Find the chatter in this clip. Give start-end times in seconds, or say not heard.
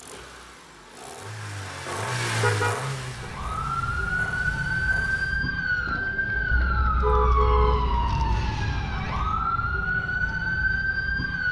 not heard.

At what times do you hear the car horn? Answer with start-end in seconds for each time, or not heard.
2.4-3.3, 6.5-8.5.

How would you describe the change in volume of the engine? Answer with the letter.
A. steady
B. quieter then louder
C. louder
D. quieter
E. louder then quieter
E.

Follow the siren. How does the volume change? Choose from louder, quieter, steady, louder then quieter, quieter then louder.
steady.